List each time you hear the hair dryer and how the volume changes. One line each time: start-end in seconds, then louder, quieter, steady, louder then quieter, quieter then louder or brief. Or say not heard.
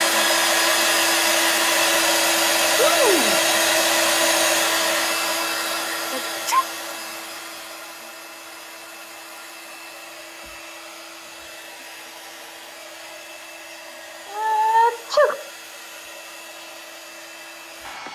0.0-18.1 quieter.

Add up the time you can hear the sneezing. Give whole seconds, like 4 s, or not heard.
2 s.